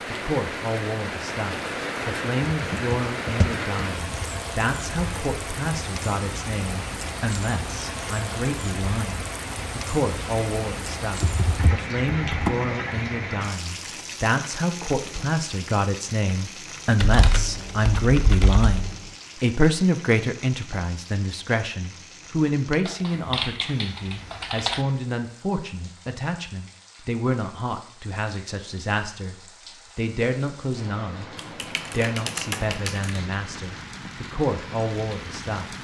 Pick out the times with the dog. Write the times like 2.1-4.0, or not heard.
not heard.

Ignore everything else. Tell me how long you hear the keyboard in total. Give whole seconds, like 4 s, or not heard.
9 s.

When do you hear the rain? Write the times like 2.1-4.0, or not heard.
0.0-35.7.